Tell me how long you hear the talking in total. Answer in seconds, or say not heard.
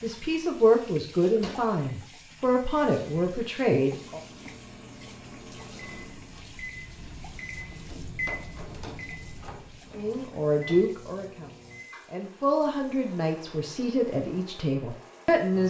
10 s.